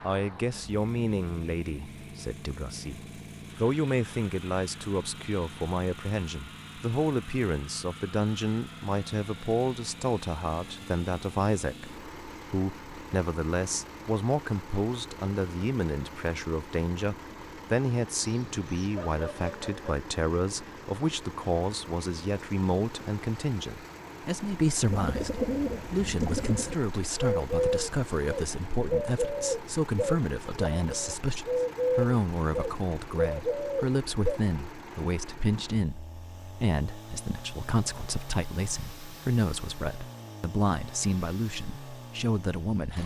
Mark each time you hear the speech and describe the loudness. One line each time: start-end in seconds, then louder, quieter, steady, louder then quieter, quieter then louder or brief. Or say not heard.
0.0-43.0 steady.